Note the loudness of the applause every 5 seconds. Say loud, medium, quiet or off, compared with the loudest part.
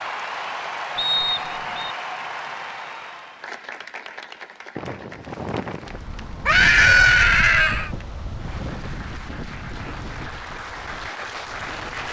loud, medium, loud.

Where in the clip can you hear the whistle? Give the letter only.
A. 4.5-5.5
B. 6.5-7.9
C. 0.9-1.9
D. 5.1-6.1
C.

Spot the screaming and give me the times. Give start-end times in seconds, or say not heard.
6.5-7.9.